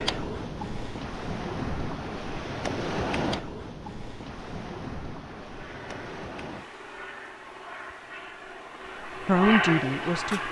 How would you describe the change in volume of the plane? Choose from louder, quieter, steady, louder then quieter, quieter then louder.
louder.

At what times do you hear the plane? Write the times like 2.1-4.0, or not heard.
5.5-10.4.